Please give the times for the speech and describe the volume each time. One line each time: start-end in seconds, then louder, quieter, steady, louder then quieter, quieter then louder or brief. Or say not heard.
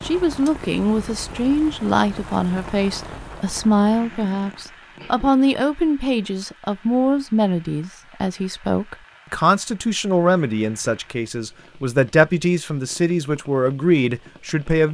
0.0-14.8 steady.